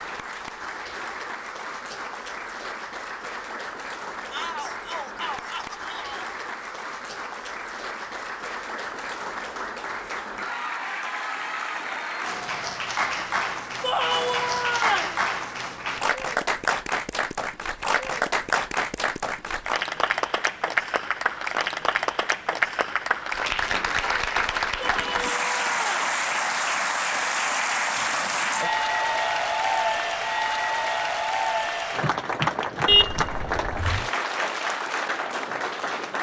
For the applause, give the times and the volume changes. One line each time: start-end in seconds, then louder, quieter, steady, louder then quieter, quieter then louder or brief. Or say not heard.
0.0-36.1 louder.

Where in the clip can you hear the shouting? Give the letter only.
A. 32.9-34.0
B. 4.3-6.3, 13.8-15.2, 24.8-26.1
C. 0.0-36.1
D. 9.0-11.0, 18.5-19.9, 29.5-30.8
B.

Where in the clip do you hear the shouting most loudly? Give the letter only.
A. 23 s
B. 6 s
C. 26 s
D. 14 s
D.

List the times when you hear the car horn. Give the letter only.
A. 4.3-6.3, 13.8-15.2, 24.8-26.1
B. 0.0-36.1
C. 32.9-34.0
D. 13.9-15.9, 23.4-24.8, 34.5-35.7
C.